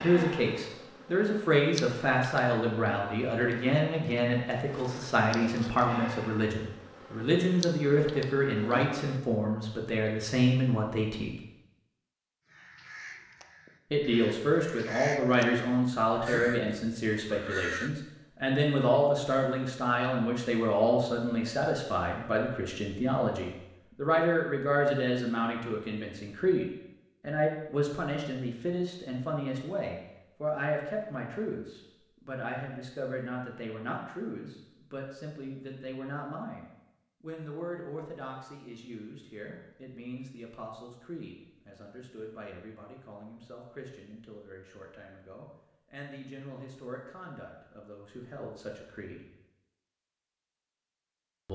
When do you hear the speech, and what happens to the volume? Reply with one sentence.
You can hear the speech from 0.0 to 11.3 s, at a steady volume; and from 13.9 to 49.2 s, getting quieter.